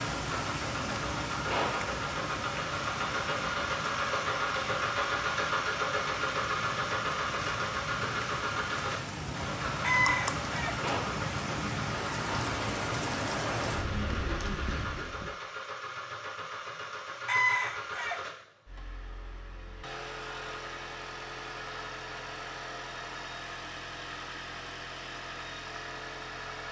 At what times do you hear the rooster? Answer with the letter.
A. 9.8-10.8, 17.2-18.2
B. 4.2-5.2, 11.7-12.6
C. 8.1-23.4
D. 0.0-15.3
A.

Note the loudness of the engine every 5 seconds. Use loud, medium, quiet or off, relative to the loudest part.
loud, loud, medium, medium, medium, medium.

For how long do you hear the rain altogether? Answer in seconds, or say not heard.
15 s.